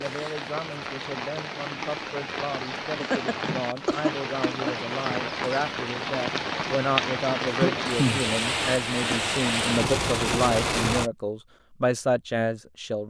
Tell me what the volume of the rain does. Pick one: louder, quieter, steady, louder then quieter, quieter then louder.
louder.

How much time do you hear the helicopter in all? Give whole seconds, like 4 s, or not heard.
not heard.